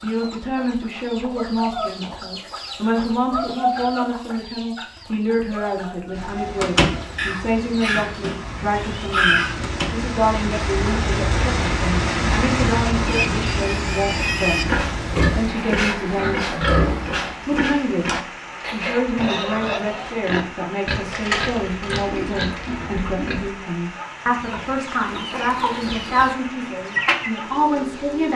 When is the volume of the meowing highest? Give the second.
9 s.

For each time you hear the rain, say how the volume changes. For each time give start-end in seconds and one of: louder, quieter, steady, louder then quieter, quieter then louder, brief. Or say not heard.
6.1-28.3 louder then quieter.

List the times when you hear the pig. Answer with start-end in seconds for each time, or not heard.
13.1-23.5.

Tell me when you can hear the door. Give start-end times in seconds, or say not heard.
6.6-7.0, 9.6-10.1, 21.1-22.9.